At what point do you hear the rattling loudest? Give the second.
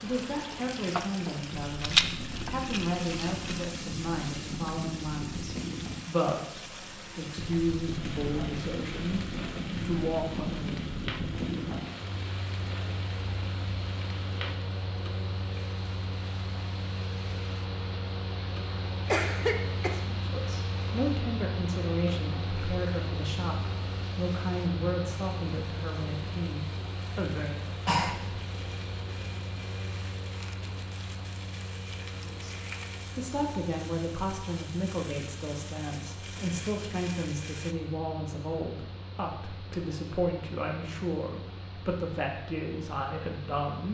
2 s.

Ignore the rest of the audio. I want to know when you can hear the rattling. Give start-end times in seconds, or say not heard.
1.8-3.8.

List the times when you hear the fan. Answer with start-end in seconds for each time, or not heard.
0.0-43.8.